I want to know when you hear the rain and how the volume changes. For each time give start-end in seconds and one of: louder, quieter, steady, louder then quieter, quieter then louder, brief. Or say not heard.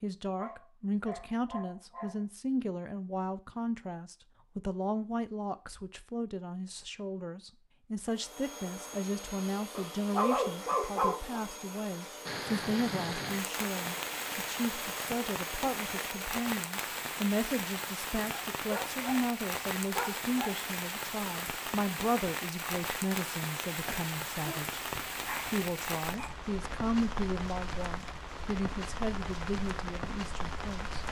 12.2-31.0 steady.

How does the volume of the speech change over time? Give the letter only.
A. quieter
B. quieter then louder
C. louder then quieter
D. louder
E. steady
E.